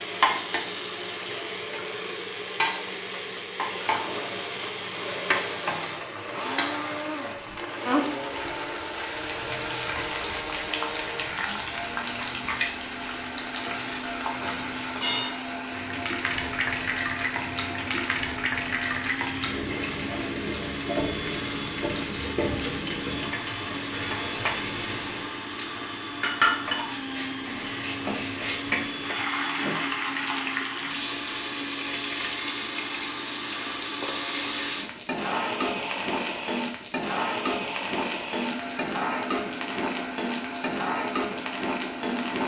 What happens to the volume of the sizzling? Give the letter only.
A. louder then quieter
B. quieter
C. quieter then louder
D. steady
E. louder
D.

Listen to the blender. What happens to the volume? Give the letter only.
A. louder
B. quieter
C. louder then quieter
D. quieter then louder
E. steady
E.